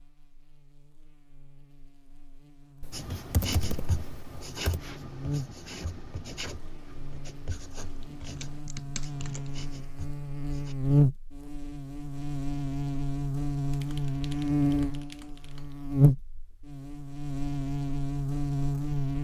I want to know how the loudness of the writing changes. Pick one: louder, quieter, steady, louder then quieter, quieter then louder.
quieter.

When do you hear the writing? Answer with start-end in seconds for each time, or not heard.
2.9-10.8.